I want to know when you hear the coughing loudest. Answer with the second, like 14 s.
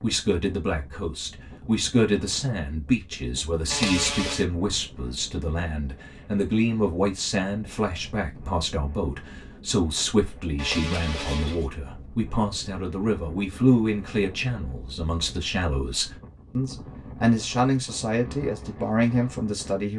4 s.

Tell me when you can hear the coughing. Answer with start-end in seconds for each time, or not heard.
3.7-4.5, 10.6-11.7.